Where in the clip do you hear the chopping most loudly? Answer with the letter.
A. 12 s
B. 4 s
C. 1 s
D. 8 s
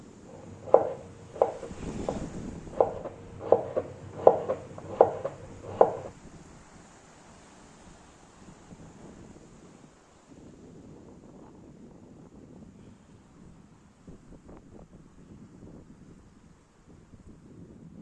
B.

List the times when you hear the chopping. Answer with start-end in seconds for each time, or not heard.
0.7-6.1.